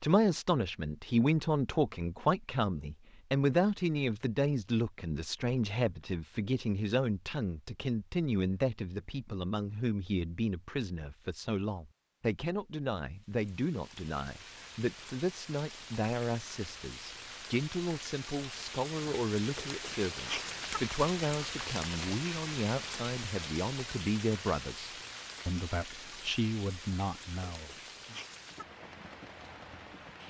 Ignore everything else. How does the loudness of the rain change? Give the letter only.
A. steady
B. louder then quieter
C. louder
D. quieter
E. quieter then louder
B.